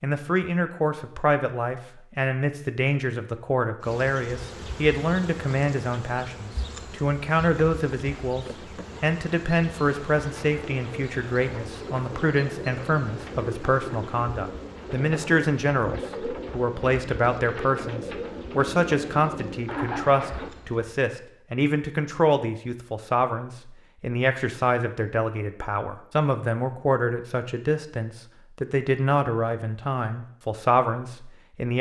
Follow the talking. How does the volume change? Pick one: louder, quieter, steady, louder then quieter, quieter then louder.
steady.